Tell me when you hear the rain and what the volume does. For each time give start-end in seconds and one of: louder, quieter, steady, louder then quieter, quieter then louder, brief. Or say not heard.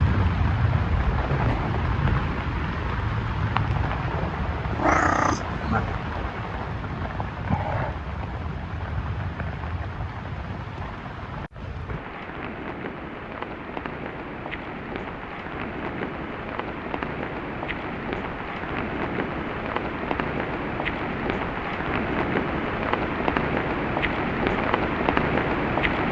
0.0-26.0 quieter then louder.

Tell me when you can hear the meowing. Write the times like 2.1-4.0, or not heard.
4.7-6.0.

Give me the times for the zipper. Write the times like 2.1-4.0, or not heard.
not heard.